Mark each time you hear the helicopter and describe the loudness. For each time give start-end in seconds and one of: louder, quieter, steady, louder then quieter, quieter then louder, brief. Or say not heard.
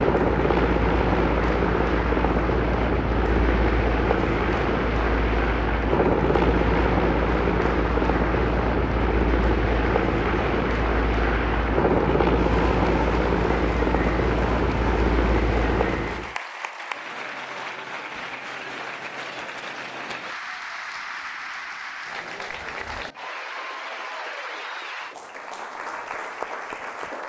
0.0-16.4 steady.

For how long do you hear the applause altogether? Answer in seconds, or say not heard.
27 s.